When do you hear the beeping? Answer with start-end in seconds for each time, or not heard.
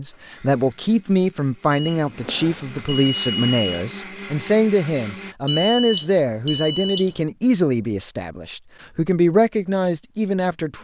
1.7-3.9, 5.5-7.2.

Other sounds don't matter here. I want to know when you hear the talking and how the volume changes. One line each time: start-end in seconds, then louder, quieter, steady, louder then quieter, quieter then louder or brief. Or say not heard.
0.0-10.7 steady.